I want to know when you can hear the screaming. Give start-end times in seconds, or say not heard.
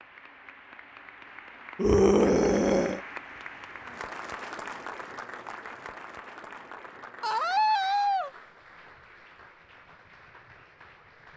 1.8-3.0, 7.2-8.3.